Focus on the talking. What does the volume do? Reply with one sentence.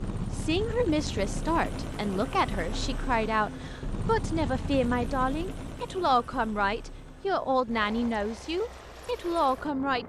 The volume of the talking stays about the same.